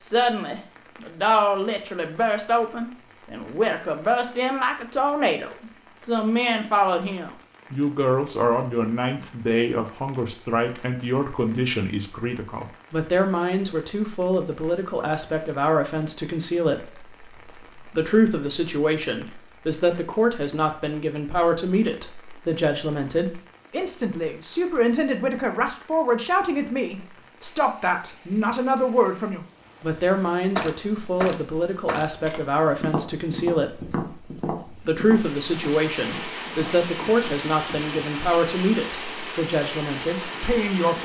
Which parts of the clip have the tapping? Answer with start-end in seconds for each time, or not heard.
30.6-38.0.